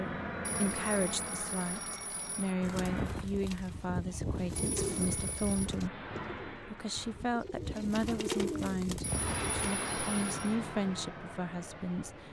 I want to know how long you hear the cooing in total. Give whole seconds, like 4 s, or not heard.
7 s.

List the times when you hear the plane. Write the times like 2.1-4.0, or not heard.
0.0-3.3, 4.8-7.3, 9.0-12.2.